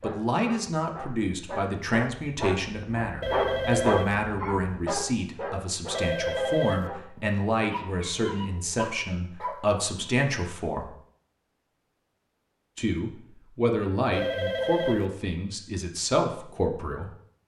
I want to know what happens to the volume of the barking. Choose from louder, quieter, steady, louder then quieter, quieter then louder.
louder then quieter.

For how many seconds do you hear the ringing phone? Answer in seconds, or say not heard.
3 s.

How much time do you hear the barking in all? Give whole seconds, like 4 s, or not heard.
10 s.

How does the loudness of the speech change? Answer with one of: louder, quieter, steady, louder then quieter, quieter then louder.
steady.